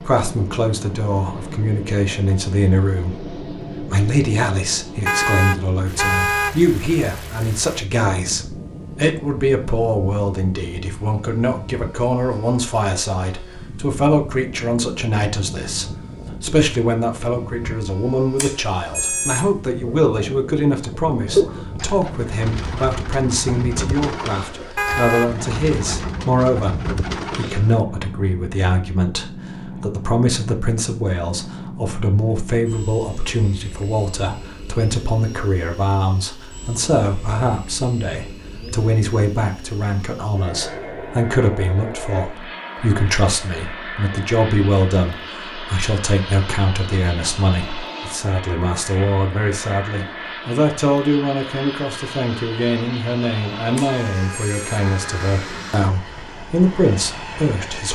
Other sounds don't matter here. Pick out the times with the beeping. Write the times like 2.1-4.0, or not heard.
18.4-19.6, 53.8-54.8.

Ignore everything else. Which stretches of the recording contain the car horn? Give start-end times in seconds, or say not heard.
5.0-6.5, 24.8-25.3, 53.9-55.4.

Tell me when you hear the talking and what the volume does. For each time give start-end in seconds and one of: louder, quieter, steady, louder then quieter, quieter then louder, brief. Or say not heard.
0.0-57.9 steady.